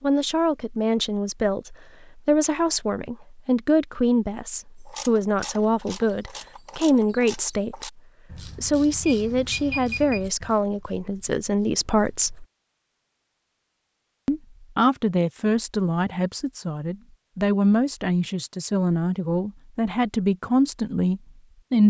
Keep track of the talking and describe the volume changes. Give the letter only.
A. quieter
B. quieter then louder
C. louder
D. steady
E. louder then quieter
D.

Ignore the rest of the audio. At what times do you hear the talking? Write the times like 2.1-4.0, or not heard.
0.0-12.4, 14.2-21.8.